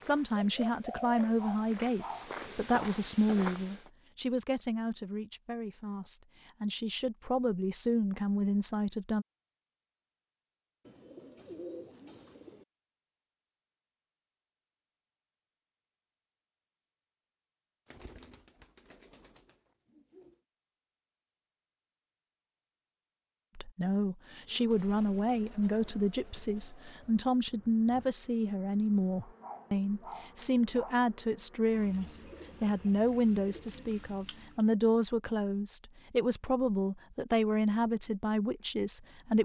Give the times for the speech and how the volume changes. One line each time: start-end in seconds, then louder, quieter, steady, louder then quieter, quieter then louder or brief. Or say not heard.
0.0-9.2 quieter then louder
23.6-39.3 steady.